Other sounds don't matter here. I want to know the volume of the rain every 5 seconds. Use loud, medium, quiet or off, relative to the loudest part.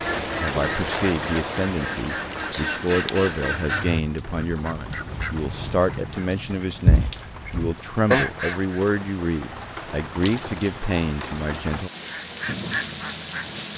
loud, medium, loud.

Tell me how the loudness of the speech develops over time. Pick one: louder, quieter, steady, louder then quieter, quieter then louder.
steady.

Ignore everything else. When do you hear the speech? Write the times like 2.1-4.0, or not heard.
0.3-11.9.